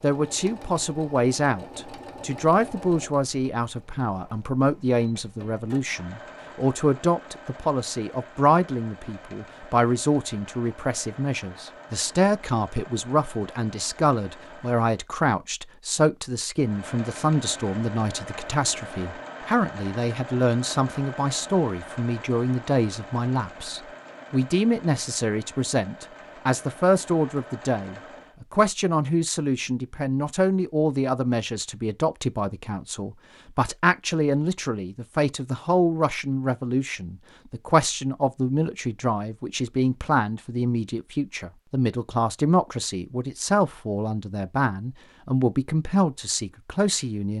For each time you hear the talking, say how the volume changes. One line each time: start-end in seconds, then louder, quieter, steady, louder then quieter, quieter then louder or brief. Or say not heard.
0.0-47.3 steady.